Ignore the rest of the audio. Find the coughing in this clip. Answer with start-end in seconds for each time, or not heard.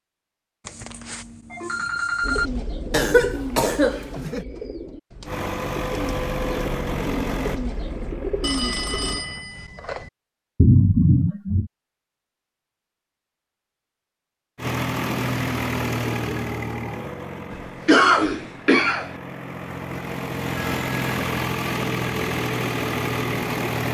2.9-4.5, 10.6-11.7, 17.5-19.1.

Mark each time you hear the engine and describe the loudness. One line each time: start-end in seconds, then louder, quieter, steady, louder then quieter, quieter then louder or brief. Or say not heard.
5.2-9.5 quieter
14.6-23.8 quieter then louder.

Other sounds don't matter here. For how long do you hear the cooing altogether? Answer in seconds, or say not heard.
7 s.